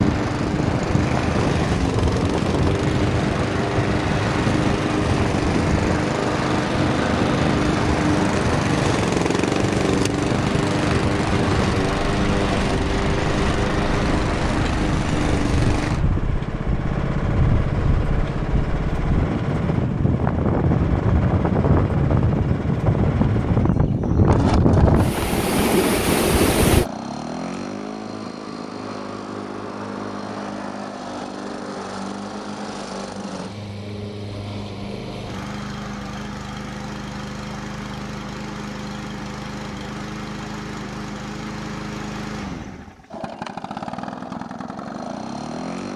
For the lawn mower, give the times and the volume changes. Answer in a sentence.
You can hear the lawn mower from 0.0 to 45.9 s, getting quieter.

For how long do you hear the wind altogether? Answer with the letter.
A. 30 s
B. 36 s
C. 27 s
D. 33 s
C.